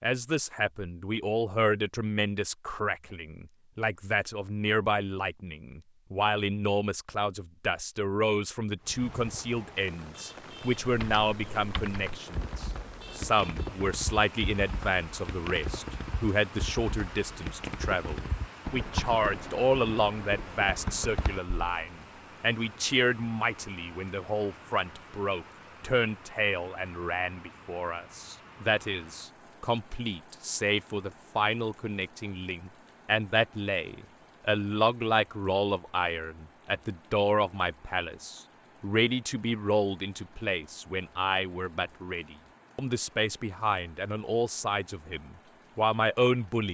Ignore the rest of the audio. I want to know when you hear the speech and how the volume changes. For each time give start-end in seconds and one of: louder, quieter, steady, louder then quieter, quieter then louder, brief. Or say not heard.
0.0-46.6 steady.